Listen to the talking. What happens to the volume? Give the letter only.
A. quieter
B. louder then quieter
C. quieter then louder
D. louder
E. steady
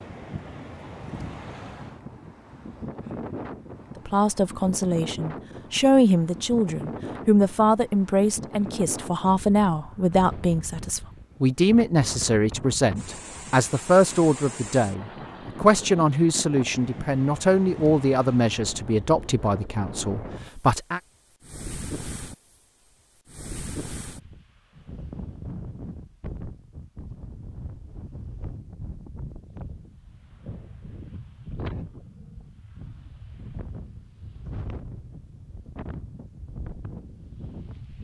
E.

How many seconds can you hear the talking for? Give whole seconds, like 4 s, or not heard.
17 s.